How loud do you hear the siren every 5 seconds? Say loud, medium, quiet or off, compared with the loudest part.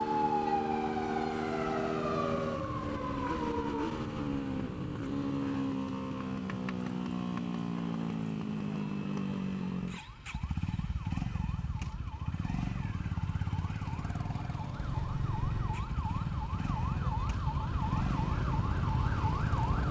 loud, medium, medium, loud.